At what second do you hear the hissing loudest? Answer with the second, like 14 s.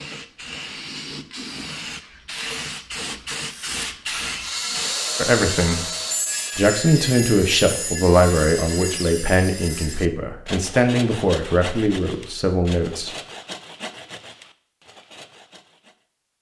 4 s.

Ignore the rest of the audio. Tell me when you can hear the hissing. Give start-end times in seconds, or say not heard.
0.0-5.0.